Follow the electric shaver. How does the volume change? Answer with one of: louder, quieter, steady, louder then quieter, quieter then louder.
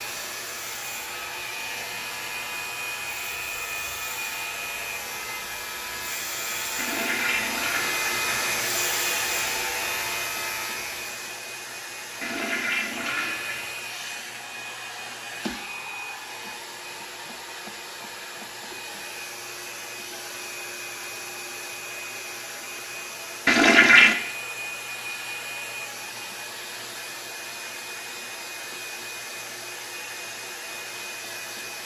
louder.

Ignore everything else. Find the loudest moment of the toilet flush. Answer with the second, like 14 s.
24 s.